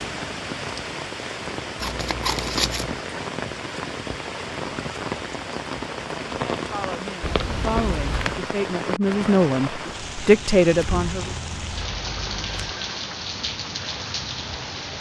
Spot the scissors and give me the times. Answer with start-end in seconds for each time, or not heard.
1.8-3.0, 7.2-8.4, 10.7-12.7.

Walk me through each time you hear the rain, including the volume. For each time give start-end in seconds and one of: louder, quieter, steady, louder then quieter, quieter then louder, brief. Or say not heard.
0.0-14.9 steady.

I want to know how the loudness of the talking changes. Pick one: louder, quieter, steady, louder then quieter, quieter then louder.
louder.